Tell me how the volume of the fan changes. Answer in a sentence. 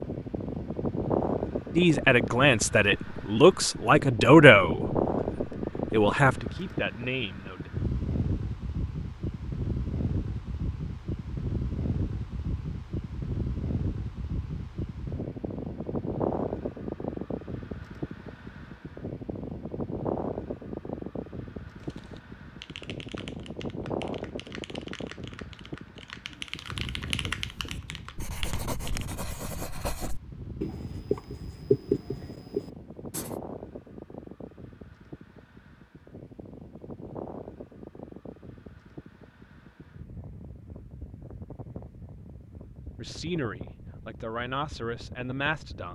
The volume of the fan goes down.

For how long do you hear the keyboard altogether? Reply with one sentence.
You can hear the keyboard for 7 seconds altogether.